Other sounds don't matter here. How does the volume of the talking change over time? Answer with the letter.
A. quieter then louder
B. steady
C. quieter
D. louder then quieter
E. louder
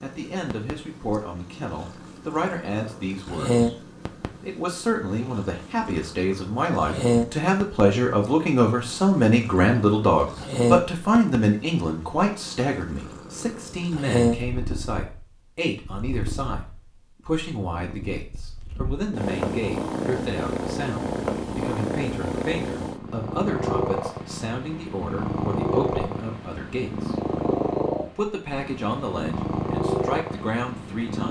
D.